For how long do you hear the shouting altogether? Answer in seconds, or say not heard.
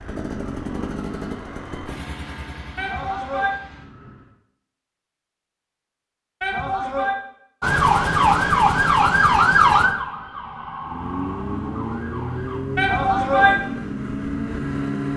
2 s.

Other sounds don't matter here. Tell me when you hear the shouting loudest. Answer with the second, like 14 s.
13 s.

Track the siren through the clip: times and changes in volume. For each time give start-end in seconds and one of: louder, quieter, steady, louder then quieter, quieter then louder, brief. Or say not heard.
7.6-12.6 quieter.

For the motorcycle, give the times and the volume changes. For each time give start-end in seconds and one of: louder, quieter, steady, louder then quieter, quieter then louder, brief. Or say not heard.
0.0-4.3 quieter
10.8-15.1 steady.